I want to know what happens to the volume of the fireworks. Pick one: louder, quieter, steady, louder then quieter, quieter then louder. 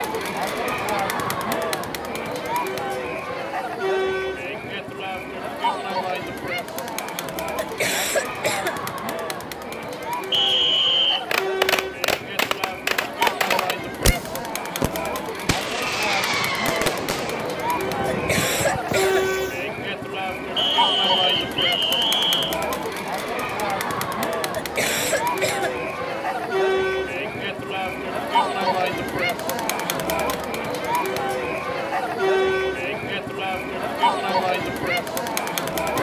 quieter.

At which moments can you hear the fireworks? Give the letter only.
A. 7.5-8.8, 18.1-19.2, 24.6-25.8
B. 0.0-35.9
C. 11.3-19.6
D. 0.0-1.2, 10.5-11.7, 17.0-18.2
C.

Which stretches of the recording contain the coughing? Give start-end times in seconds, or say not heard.
7.5-8.8, 18.1-19.2, 24.6-25.8.